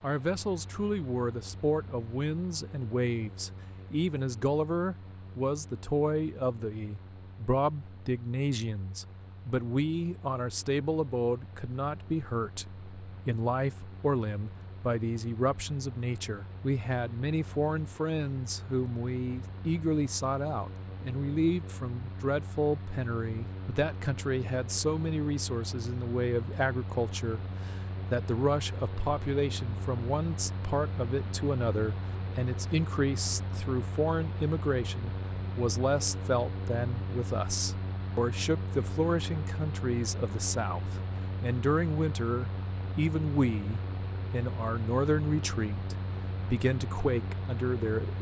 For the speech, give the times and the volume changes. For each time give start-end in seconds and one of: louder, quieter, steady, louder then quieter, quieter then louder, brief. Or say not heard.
0.0-48.1 steady.